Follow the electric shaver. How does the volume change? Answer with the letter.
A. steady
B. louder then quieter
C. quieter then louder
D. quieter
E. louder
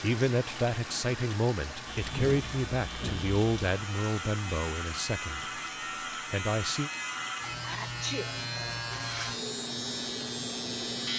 E.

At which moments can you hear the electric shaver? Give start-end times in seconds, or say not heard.
1.9-11.1.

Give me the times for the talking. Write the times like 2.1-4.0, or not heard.
0.0-5.5, 6.3-6.9.